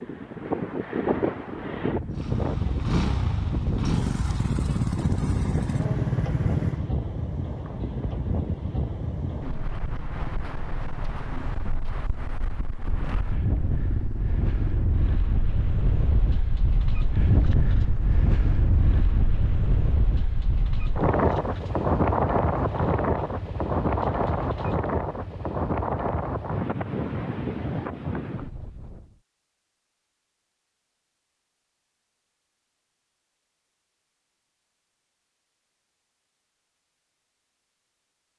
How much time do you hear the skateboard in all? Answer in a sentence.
You can't hear the skateboard here.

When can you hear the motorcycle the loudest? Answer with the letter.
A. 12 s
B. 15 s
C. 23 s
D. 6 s
D.